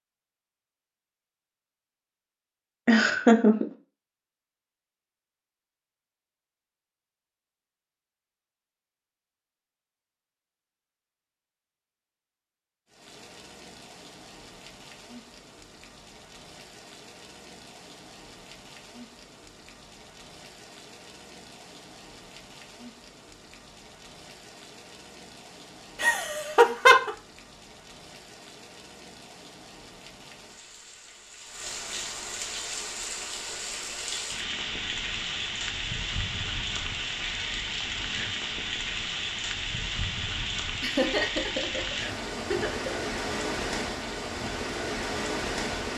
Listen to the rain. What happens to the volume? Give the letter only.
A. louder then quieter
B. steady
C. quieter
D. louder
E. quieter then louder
D.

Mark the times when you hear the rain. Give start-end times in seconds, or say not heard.
12.8-45.9.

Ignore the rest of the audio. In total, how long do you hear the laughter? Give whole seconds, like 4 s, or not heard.
4 s.